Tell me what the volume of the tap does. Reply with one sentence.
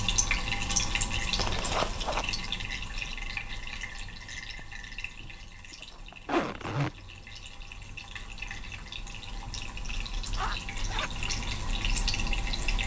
The volume of the tap goes down, then up.